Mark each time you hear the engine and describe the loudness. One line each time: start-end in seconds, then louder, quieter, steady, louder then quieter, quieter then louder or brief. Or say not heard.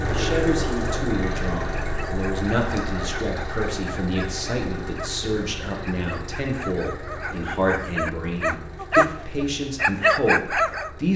0.0-11.1 quieter.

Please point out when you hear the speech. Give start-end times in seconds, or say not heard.
0.1-11.1.